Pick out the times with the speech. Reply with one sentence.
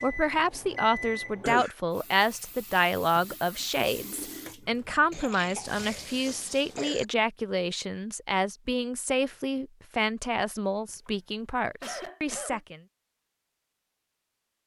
The speech can be heard from 0.0 to 12.8 s.